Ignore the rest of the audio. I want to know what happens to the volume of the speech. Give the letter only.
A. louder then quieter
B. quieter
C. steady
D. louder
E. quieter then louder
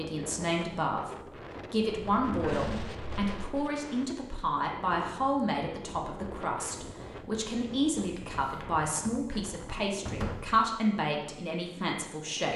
C.